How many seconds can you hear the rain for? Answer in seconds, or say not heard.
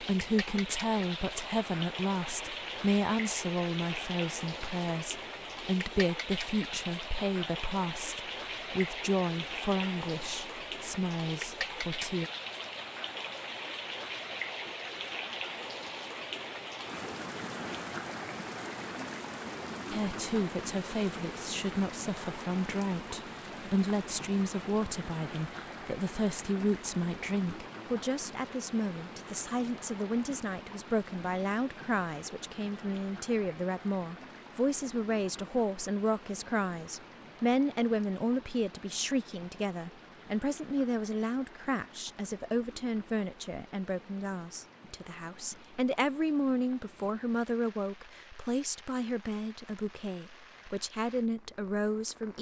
52 s.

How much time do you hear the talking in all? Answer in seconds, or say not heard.
45 s.